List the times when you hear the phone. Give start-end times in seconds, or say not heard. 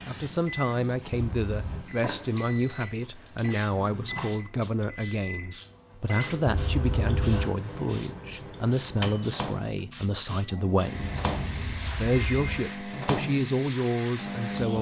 1.1-1.9, 6.5-7.5, 10.9-12.7.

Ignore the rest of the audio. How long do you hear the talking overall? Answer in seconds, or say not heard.
15 s.